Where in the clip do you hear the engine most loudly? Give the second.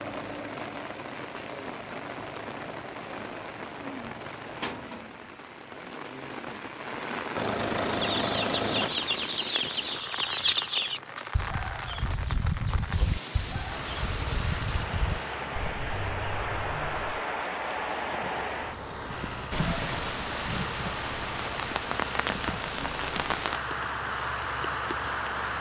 8 s.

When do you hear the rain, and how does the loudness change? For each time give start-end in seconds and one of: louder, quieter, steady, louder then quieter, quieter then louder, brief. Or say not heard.
0.0-25.5 louder.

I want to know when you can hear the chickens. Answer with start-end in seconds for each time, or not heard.
8.0-17.1.